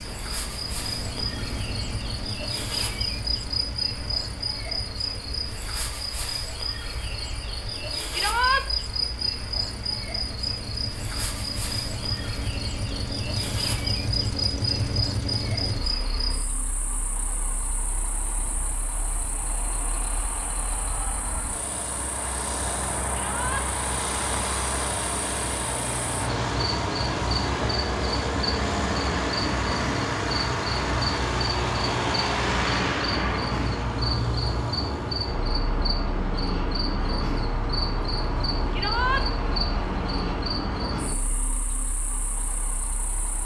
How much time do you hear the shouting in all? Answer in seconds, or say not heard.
2 s.